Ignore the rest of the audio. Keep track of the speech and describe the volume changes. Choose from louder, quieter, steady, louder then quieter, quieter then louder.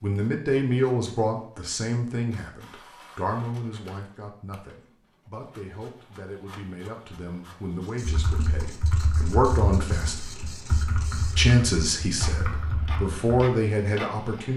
quieter then louder.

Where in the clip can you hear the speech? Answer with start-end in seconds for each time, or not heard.
0.0-10.3, 11.3-14.5.